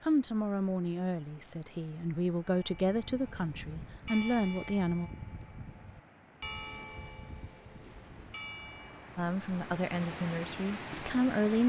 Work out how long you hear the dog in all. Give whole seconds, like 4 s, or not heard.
not heard.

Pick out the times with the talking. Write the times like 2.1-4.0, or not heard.
0.0-5.1, 9.2-11.6.